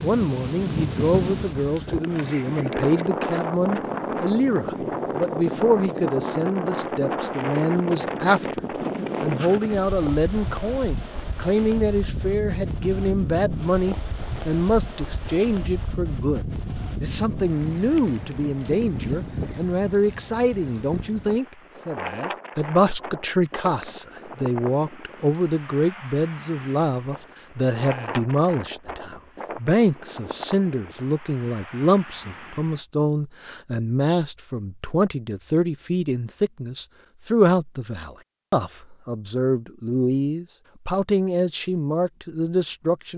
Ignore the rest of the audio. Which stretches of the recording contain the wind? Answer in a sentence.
The wind can be heard from 0.0 to 32.9 s.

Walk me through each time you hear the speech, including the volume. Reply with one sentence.
The speech can be heard from 0.0 to 43.1 s, at a steady volume.